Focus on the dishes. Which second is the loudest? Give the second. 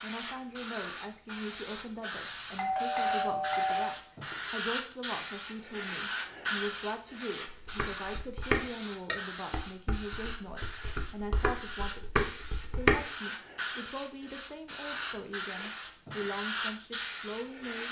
13 s.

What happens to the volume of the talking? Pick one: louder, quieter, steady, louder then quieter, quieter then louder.
steady.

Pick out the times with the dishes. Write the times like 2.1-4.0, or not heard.
7.5-13.1.